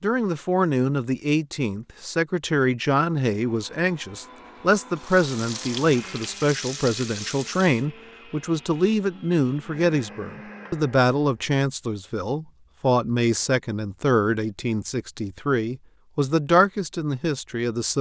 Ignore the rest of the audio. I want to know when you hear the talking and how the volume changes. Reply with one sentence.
You can hear the talking from 0.0 to 17.9 s, at a steady volume.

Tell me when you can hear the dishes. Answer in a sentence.
The dishes can't be heard in this clip.